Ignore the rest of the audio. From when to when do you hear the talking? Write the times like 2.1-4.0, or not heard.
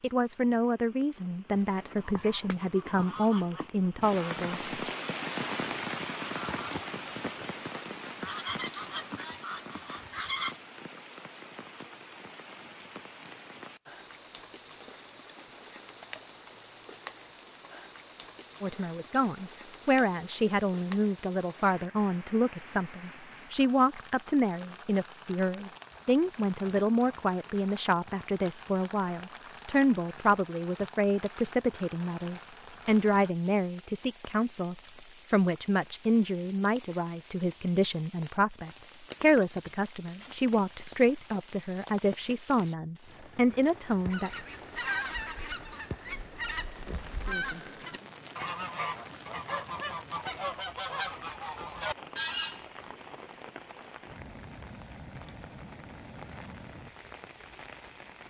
0.0-4.8, 18.6-44.3.